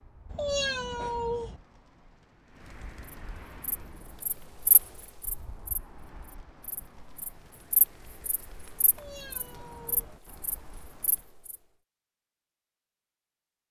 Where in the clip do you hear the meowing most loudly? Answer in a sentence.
The loudest moment of the meowing is at 1 second.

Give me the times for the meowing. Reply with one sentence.
You can hear the meowing from 0.3 to 1.6 s and from 8.8 to 10.2 s.